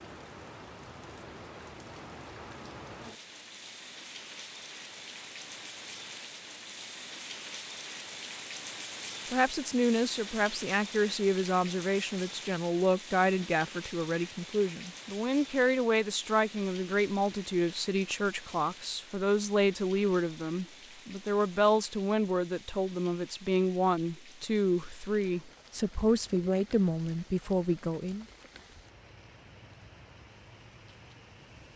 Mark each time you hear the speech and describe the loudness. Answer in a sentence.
You can hear the speech from 9.3 to 28.2 s, at a steady volume.